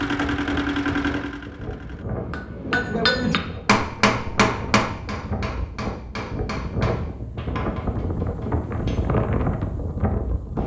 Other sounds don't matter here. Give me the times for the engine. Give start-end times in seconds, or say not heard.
0.0-2.0.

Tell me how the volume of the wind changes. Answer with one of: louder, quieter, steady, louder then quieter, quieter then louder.
louder.